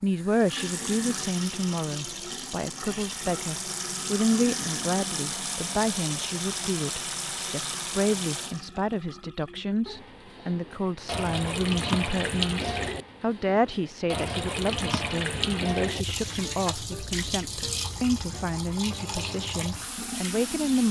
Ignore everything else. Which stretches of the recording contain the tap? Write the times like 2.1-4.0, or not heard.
0.0-20.8.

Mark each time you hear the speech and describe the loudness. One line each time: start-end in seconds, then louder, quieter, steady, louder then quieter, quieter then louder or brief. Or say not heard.
0.0-20.8 steady.